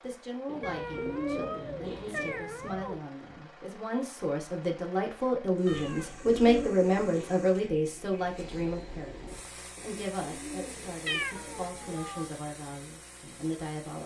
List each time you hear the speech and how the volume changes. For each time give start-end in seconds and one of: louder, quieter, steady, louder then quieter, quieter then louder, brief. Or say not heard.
0.0-14.0 louder then quieter.